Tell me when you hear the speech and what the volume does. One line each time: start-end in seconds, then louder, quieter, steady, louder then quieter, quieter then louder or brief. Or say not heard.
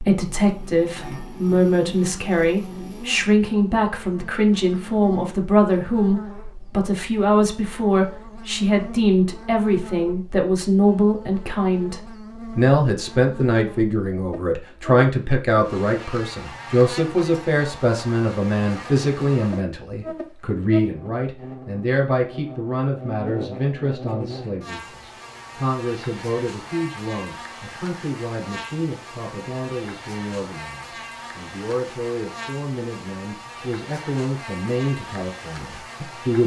0.0-36.4 quieter.